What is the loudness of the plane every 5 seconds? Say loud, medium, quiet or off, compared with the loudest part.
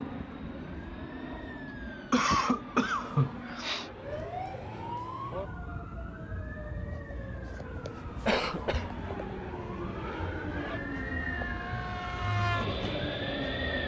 medium, medium, loud.